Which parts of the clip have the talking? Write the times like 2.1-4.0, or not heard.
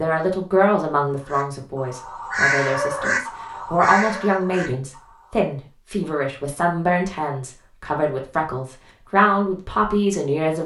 0.0-10.6.